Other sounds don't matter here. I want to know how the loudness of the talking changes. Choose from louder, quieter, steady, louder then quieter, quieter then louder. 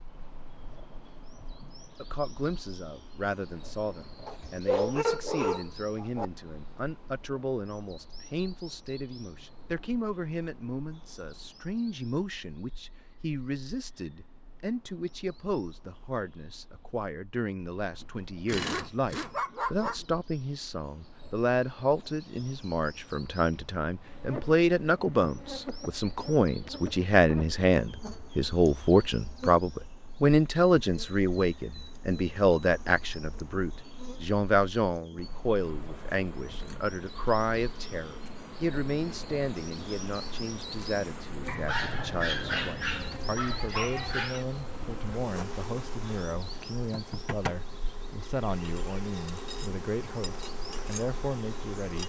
louder then quieter.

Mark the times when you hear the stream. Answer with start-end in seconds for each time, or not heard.
not heard.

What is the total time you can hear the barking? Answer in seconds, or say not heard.
7 s.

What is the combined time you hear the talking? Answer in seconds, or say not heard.
50 s.